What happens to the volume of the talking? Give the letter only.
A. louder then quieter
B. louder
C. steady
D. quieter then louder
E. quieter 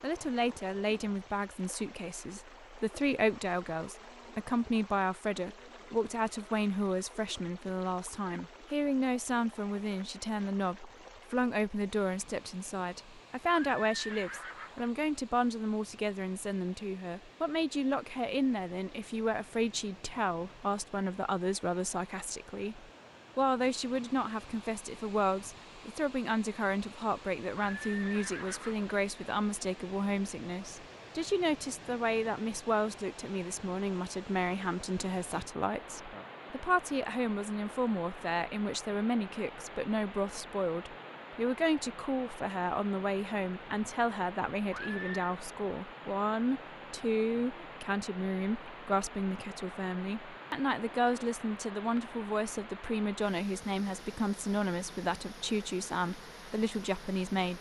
C.